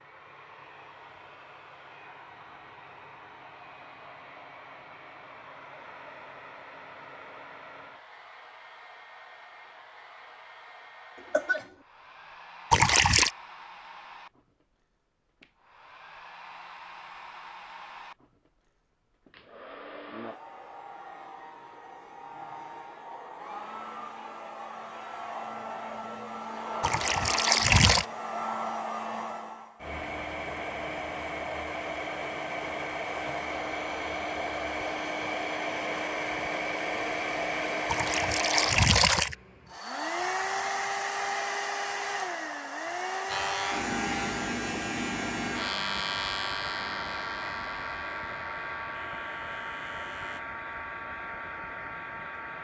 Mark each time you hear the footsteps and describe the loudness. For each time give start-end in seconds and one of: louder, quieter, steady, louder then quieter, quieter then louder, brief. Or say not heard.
not heard.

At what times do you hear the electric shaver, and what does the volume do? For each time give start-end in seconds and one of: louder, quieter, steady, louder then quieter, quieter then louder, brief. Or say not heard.
43.2-50.4 quieter.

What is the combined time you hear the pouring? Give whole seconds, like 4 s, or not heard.
3 s.